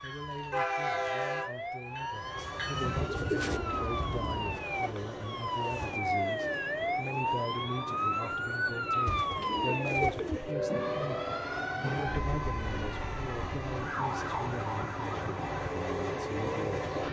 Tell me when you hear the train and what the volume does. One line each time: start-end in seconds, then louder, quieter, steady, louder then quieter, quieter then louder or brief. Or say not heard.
0.0-17.0 quieter then louder.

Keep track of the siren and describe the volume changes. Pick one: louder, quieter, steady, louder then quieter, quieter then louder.
louder then quieter.